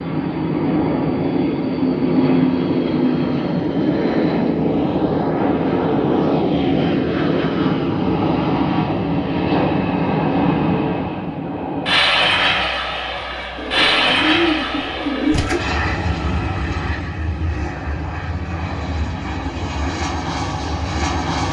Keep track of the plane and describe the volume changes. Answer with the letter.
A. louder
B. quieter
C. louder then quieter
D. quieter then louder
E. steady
B.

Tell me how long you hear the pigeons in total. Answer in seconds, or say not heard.
2 s.